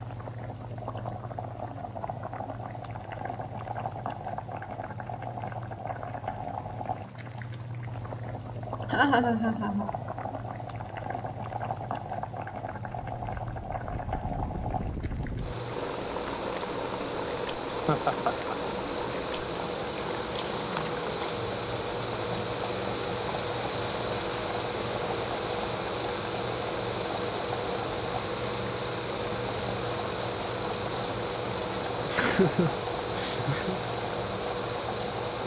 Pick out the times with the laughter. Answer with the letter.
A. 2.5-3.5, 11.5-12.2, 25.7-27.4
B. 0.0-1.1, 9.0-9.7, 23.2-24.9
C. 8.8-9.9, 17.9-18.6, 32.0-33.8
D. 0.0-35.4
C.